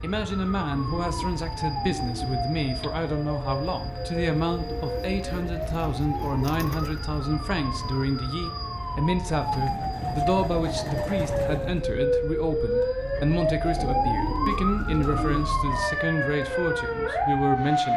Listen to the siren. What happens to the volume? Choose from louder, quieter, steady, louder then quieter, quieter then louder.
louder.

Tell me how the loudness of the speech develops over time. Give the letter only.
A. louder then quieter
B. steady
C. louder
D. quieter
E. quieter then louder
B.